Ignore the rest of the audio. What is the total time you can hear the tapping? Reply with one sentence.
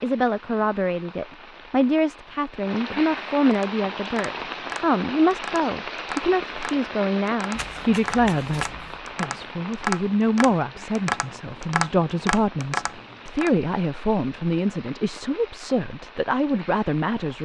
The tapping can be heard for 10 seconds in total.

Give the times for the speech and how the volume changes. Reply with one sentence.
You can hear the speech from 0.0 to 17.4 s, at a steady volume.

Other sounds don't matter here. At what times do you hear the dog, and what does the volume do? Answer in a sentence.
The dog can't be heard in this clip.